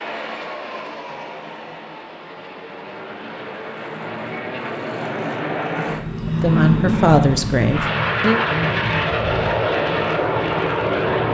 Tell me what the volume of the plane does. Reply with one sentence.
The volume of the plane goes up.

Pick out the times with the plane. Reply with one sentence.
The plane can be heard from 0.0 to 11.2 s.